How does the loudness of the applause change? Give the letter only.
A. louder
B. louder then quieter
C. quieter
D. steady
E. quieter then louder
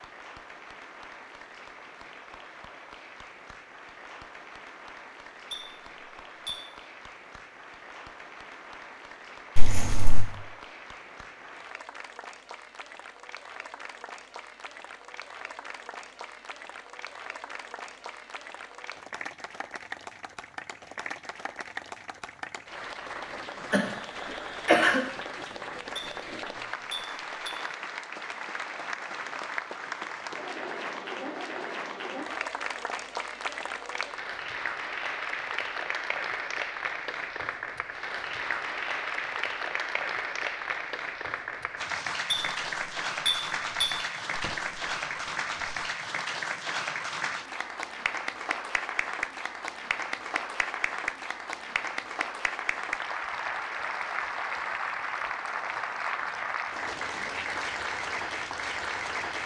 A.